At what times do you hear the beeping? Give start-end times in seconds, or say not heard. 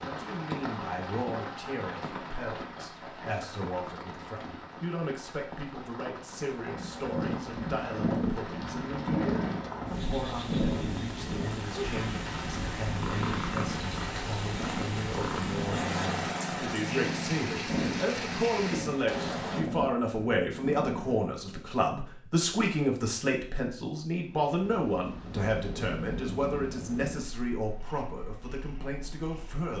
not heard.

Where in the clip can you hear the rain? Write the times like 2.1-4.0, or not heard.
0.0-19.6.